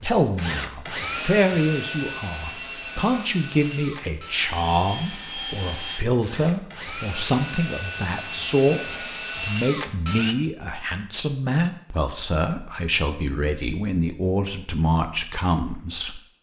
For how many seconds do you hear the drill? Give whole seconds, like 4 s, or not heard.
10 s.